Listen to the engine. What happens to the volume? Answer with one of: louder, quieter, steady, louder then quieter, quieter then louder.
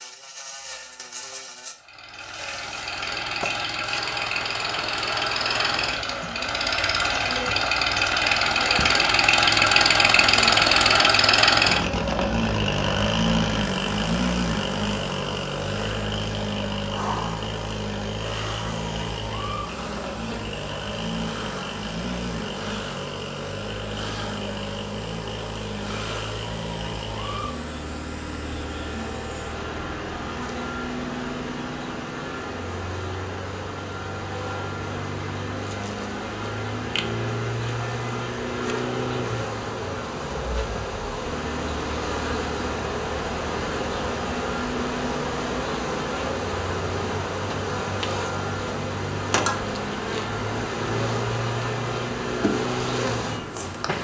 quieter.